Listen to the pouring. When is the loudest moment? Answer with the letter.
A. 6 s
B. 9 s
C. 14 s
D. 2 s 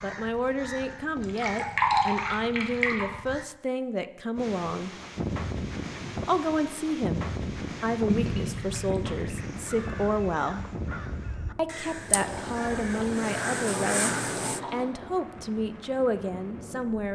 D.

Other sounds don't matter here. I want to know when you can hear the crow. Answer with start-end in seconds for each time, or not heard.
0.0-3.5, 9.3-14.6.